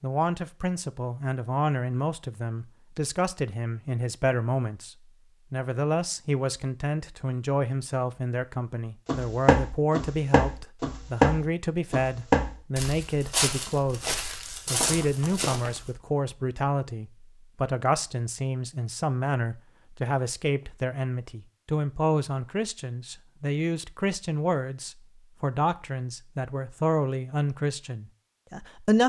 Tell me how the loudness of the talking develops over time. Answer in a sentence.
The volume of the talking stays about the same.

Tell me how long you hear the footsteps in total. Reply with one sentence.
You can hear the footsteps for 7 seconds altogether.